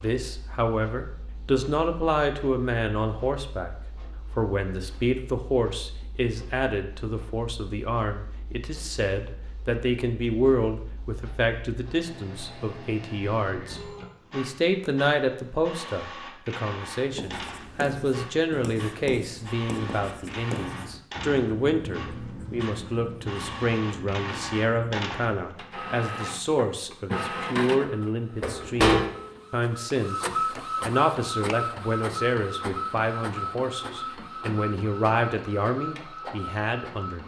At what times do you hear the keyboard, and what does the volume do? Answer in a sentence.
You can't hear the keyboard here.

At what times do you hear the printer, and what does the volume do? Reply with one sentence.
The printer can be heard from 0.0 to 37.2 s, getting louder.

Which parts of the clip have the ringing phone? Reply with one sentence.
The ringing phone can't be heard in this clip.